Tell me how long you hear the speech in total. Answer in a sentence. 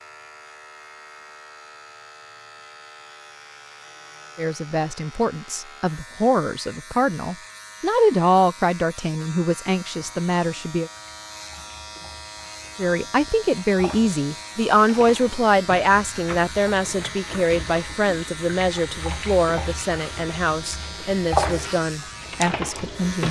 The speech can be heard for 17 seconds in total.